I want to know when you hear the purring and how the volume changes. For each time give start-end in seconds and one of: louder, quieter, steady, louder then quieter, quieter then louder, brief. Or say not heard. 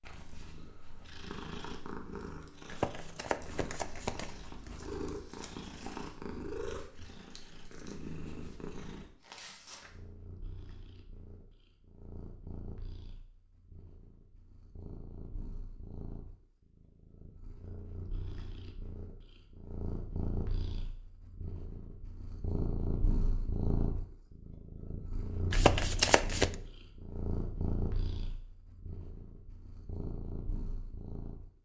0.0-31.5 quieter then louder.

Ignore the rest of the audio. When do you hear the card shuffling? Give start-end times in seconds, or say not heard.
2.6-4.9, 25.5-26.6.